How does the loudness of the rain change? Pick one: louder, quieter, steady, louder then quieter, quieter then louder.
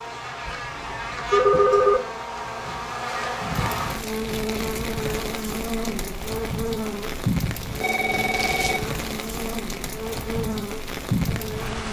louder.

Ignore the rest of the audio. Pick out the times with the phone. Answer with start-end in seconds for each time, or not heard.
0.5-2.0, 7.8-8.9.